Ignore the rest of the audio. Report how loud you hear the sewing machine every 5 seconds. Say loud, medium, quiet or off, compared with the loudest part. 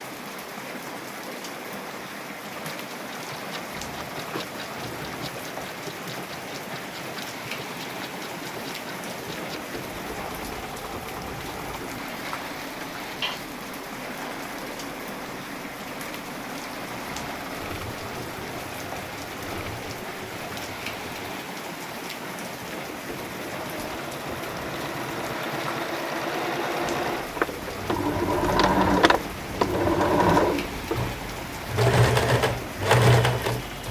quiet, quiet, quiet, quiet, quiet, loud, loud.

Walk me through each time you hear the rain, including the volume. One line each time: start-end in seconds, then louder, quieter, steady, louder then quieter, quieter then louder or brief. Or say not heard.
0.0-33.8 steady.